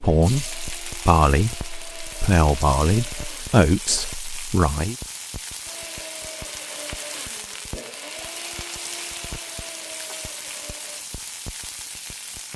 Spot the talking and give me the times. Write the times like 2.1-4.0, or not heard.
0.0-5.0.